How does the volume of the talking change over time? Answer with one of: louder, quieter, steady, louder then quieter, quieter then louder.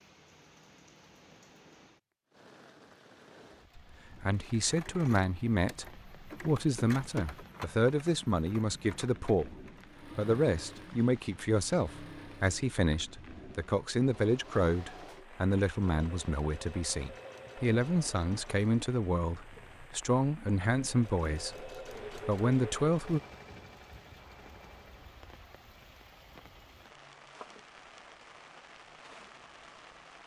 steady.